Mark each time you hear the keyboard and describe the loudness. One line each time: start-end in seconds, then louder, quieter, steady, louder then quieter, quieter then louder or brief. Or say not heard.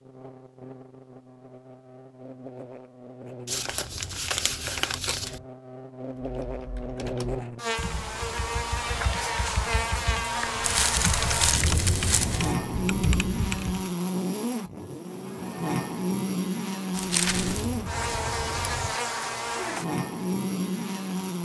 6.2-13.8 louder.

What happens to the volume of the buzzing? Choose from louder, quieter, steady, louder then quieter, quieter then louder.
louder.